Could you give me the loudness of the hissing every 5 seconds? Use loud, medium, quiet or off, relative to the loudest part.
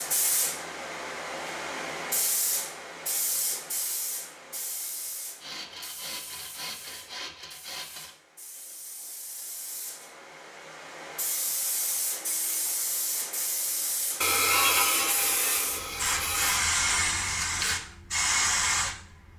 medium, quiet, medium, loud.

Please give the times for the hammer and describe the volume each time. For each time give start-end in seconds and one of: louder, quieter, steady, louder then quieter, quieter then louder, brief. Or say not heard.
not heard.